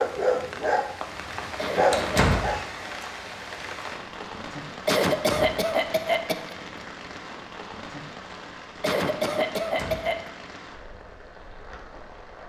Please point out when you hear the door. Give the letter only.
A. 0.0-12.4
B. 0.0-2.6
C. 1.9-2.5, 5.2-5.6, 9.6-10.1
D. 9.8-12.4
C.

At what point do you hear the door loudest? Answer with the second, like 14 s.
2 s.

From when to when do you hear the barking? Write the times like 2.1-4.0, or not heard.
0.0-2.6.